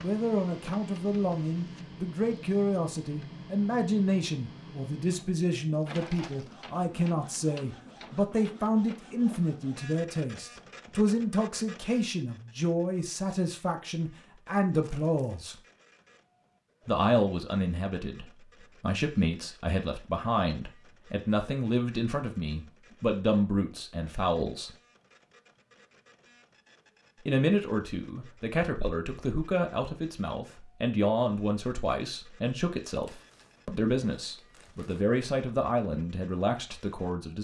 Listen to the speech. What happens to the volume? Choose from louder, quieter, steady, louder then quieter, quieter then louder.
steady.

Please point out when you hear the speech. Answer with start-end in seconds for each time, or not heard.
0.0-15.6, 16.9-24.7, 27.2-37.3.